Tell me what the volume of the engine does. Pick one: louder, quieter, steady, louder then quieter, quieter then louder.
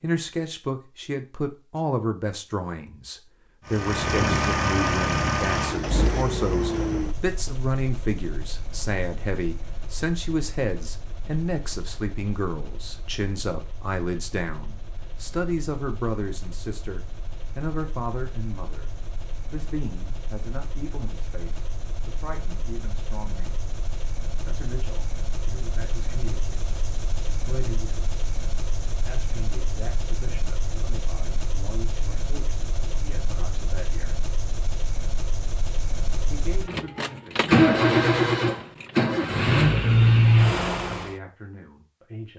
quieter then louder.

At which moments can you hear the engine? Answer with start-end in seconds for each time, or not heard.
3.6-41.1.